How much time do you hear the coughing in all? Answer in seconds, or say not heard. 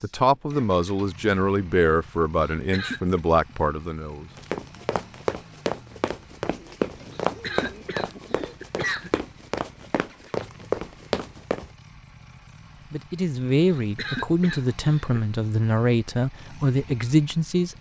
4 s.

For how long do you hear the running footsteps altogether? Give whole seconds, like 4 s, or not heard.
7 s.